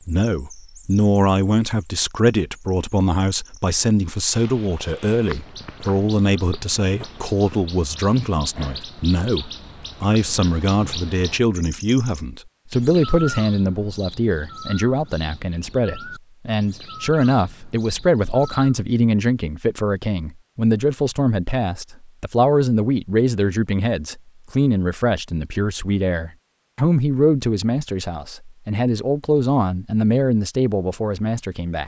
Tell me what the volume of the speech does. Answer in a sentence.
The volume of the speech stays about the same.